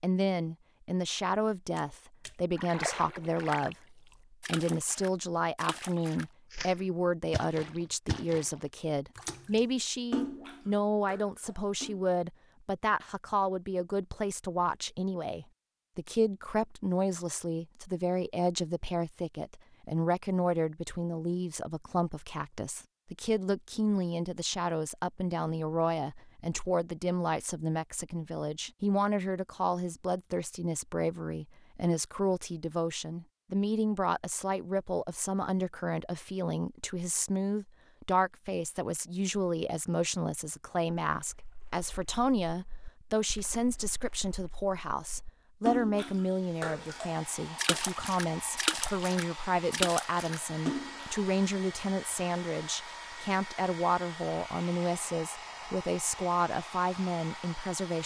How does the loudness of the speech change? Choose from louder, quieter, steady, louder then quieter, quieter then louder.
steady.